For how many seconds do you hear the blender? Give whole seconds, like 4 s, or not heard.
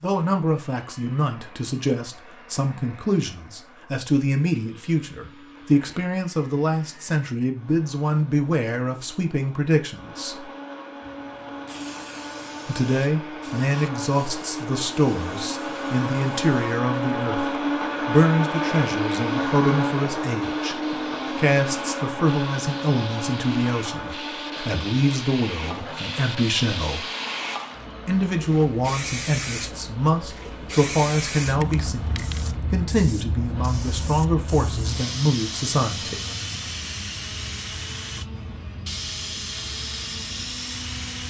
41 s.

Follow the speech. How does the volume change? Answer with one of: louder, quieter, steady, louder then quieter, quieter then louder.
steady.